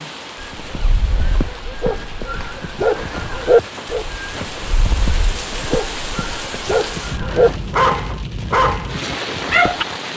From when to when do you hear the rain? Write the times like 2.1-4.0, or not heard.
0.0-10.1.